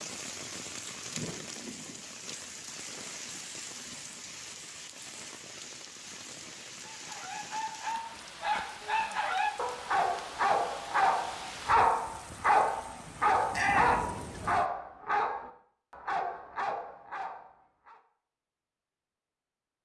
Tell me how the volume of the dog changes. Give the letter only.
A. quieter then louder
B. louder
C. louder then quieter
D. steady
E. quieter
C.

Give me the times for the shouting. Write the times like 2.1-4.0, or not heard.
13.5-14.1.